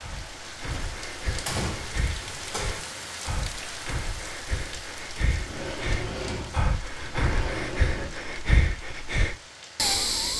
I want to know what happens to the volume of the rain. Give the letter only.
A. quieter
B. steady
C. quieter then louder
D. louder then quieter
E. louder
A.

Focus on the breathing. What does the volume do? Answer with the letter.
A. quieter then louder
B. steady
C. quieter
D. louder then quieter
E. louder
E.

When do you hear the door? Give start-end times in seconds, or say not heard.
0.7-2.9, 5.3-8.2.